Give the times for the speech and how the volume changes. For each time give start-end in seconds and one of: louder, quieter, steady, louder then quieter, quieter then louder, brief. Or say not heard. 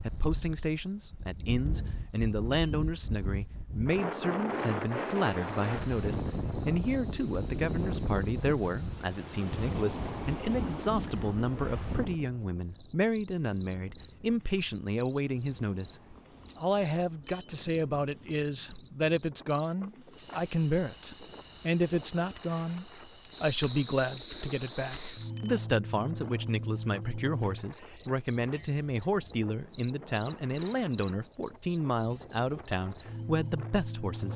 0.0-34.3 steady.